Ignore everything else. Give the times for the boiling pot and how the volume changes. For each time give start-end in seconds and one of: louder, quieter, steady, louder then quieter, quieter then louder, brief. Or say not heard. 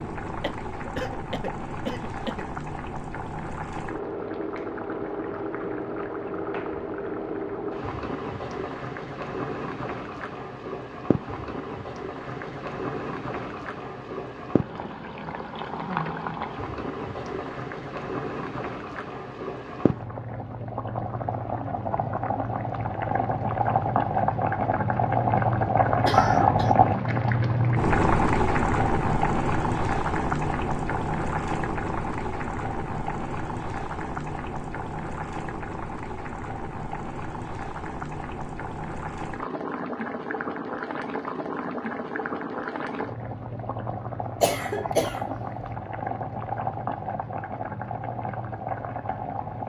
0.0-49.6 louder then quieter.